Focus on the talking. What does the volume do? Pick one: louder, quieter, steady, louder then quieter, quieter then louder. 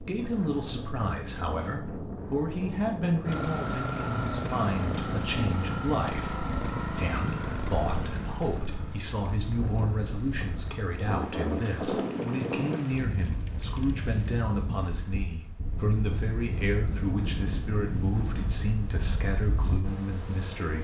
steady.